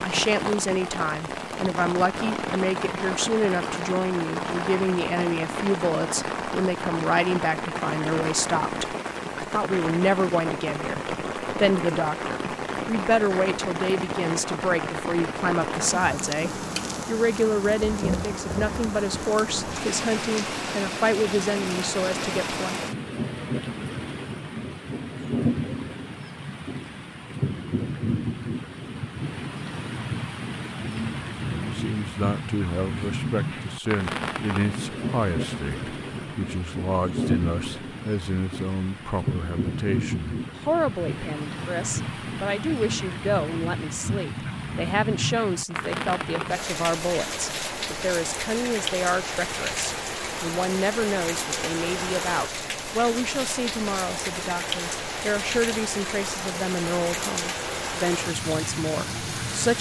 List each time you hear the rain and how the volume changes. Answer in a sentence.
You can hear the rain from 0.0 to 59.7 s, at a steady volume.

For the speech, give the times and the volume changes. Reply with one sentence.
The speech can be heard from 0.0 to 22.9 s, at a steady volume; and from 31.5 to 59.7 s, at a steady volume.